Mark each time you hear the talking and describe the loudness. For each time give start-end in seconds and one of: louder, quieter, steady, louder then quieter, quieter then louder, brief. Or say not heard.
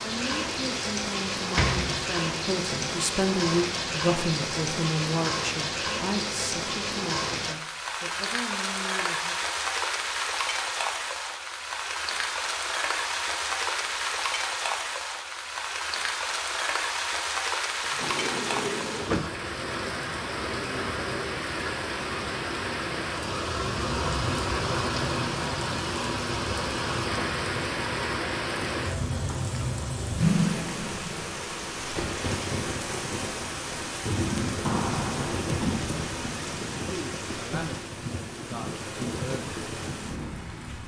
0.0-9.3 louder then quieter
36.9-39.6 brief.